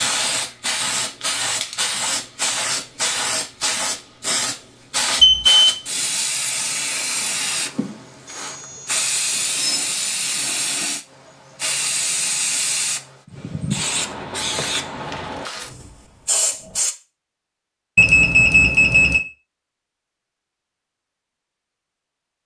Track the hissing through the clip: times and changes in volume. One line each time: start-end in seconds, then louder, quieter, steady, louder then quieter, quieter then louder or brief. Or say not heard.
0.0-16.9 steady.